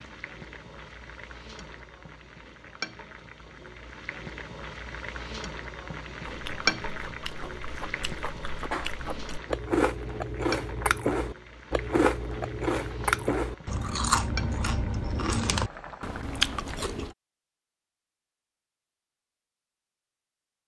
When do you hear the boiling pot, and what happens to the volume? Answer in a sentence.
The boiling pot can be heard from 0.0 to 16.9 s, getting louder then quieter.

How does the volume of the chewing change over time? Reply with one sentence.
The loudness of the chewing goes up.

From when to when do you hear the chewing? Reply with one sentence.
You can hear the chewing from 6.2 to 17.1 s.